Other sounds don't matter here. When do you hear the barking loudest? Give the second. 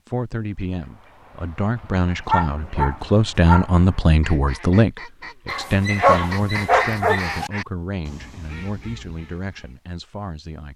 6 s.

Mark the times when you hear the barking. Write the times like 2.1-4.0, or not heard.
2.2-3.8, 5.5-7.5.